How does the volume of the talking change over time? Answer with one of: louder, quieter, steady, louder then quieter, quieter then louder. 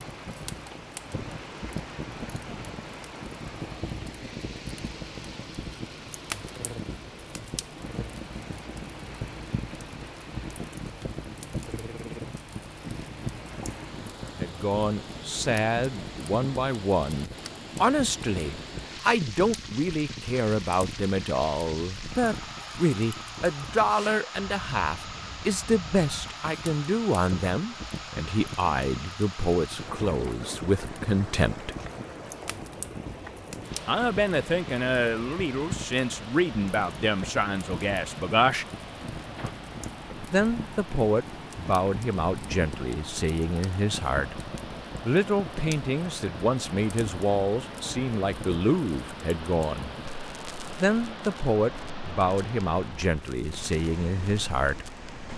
steady.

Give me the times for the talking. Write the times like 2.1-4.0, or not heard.
14.3-31.8, 33.9-38.6, 40.3-44.4, 45.0-49.9, 50.8-54.9.